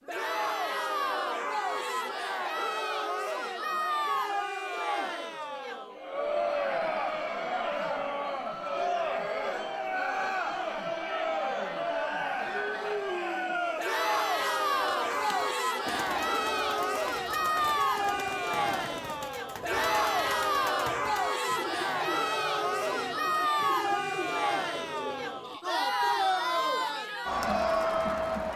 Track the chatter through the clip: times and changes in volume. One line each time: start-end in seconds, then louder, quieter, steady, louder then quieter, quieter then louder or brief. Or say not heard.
0.1-28.5 steady.